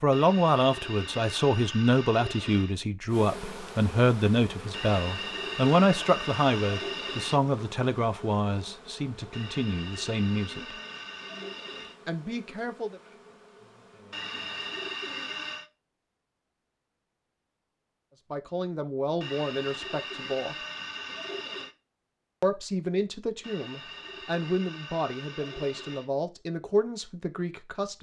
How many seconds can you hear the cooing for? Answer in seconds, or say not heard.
15 s.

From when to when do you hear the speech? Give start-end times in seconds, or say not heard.
0.0-10.8, 12.1-13.0, 18.3-20.6, 22.4-27.9.